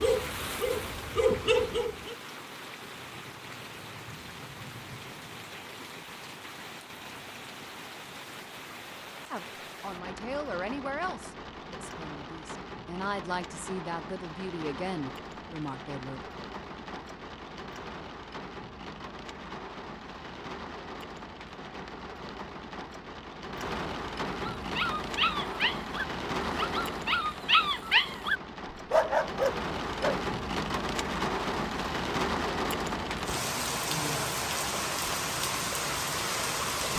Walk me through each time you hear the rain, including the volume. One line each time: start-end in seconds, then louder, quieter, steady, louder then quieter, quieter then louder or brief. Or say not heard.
0.0-36.9 louder.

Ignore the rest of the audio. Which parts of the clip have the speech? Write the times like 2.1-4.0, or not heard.
9.3-16.2.